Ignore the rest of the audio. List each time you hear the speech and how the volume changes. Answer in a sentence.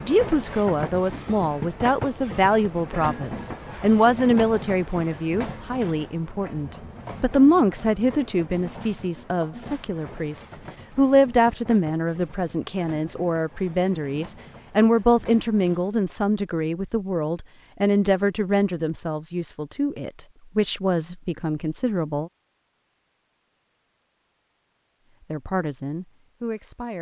The speech can be heard from 0.0 to 22.3 s, at a steady volume; and briefly from 25.3 to 26.9 s.